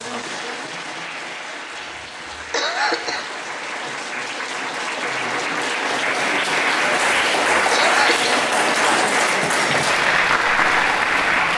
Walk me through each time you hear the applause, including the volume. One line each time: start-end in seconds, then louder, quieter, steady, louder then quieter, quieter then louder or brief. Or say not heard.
0.0-11.5 louder.